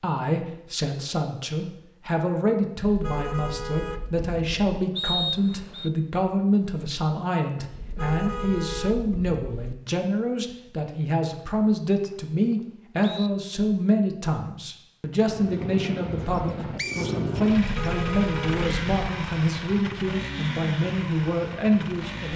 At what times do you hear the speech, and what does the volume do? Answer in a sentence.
The speech can be heard from 0.0 to 22.3 s, at a steady volume.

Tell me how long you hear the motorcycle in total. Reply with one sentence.
You can hear the motorcycle for 7 seconds altogether.